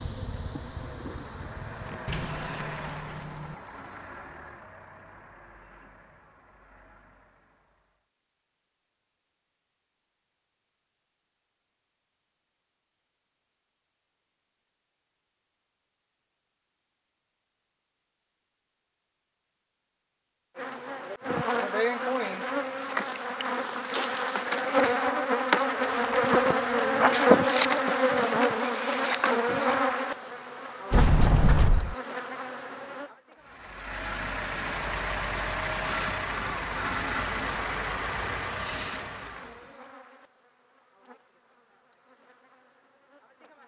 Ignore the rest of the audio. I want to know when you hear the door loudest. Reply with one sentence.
The loudest moment of the door is at 31 seconds.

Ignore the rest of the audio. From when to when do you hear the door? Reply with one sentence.
The door can be heard from 2.0 to 3.5 s, from 25.8 to 26.9 s and from 30.9 to 31.9 s.